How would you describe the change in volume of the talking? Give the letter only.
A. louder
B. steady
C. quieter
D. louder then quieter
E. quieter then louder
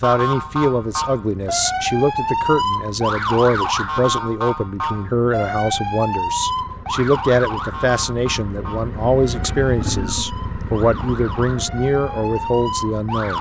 B.